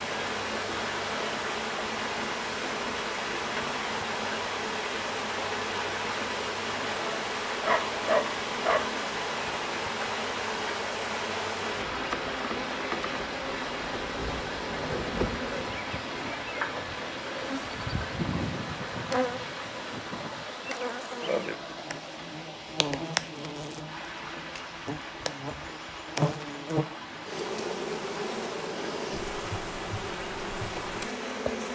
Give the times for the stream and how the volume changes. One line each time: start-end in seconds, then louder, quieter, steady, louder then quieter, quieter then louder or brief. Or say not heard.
0.0-31.7 quieter.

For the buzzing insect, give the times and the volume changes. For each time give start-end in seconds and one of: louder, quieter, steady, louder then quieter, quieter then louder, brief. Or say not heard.
0.0-31.7 steady.